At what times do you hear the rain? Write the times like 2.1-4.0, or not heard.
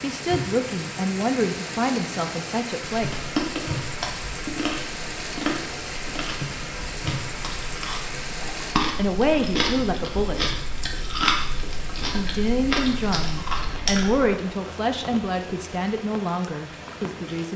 0.0-17.5.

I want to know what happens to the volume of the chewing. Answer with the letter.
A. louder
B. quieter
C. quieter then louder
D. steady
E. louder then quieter
C.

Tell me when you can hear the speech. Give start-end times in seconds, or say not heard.
0.0-3.1, 8.9-10.6, 12.1-17.5.